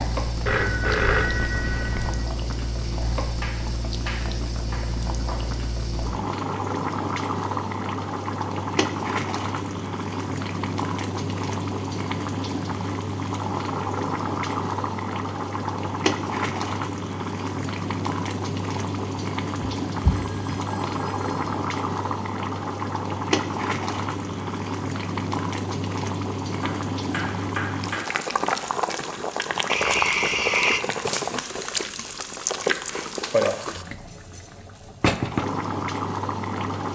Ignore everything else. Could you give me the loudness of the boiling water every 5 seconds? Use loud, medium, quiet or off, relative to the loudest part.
medium, loud, loud, loud, loud, loud, loud, loud.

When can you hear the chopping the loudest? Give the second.
28 s.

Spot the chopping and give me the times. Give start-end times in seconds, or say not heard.
2.8-5.5, 26.6-28.1.